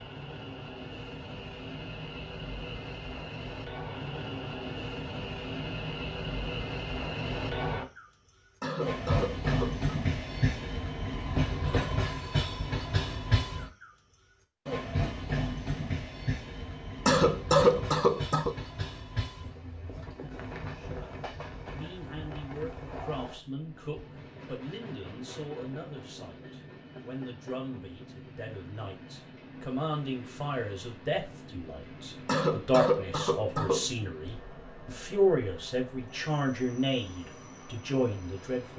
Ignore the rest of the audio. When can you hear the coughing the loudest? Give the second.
18 s.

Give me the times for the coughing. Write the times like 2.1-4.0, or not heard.
8.6-9.9, 17.1-18.6, 32.2-33.9.